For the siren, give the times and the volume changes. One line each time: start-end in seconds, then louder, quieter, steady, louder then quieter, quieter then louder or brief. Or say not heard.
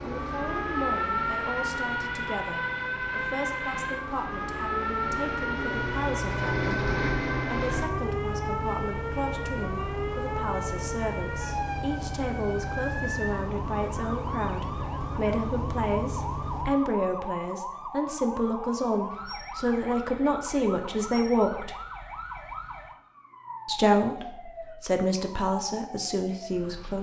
0.0-26.9 quieter.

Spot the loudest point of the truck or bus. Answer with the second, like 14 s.
7 s.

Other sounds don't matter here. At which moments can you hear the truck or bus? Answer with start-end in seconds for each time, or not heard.
0.0-16.6.